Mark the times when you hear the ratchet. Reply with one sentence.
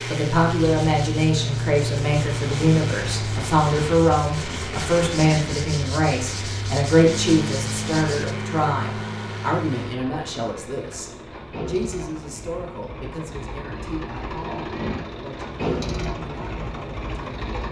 The ratchet can't be heard in this clip.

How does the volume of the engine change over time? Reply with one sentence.
The loudness of the engine goes down, then up.